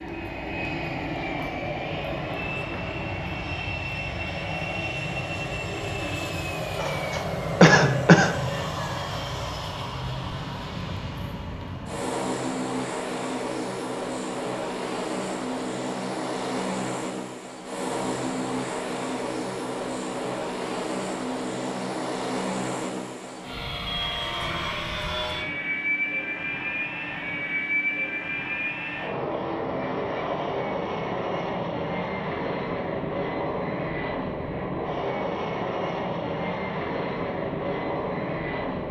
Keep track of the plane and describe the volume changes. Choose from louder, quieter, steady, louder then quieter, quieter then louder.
steady.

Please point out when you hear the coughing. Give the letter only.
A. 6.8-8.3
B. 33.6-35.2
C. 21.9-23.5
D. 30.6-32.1
A.